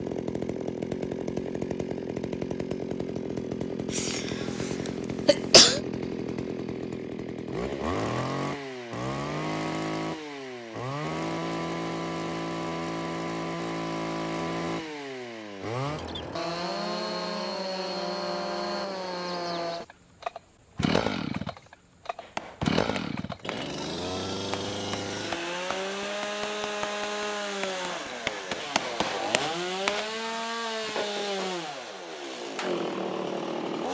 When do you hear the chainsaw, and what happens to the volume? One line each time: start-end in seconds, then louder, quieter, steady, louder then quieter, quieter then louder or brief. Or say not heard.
0.0-33.8 steady.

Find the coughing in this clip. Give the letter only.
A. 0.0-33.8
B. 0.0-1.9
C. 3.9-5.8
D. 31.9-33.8
C.